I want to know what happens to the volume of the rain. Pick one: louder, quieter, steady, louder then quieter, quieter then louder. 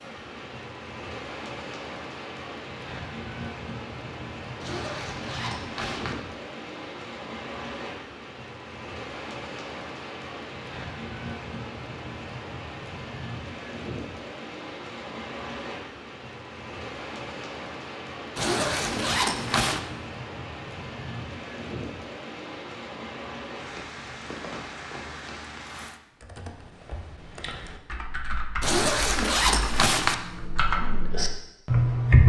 steady.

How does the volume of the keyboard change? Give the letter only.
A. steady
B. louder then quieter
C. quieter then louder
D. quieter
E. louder
E.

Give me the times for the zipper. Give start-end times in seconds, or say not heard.
4.6-6.2, 18.4-19.8, 28.6-30.1.